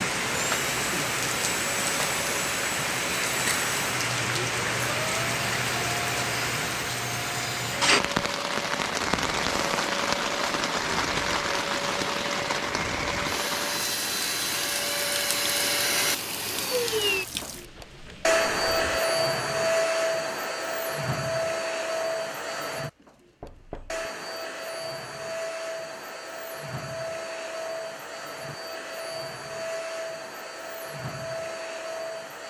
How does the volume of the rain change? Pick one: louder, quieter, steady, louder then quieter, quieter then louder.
quieter.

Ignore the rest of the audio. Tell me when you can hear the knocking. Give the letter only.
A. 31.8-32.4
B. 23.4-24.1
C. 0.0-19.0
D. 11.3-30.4
B.